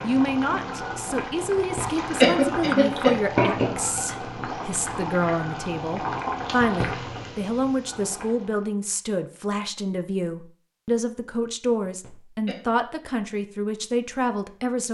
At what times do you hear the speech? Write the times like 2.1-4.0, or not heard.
0.0-14.8.